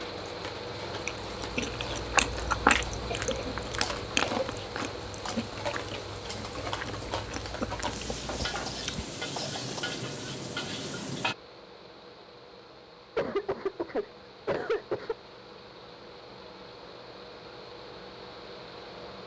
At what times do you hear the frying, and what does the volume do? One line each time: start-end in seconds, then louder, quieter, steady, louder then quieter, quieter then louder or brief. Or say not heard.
0.0-11.3 louder.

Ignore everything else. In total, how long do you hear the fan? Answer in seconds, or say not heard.
19 s.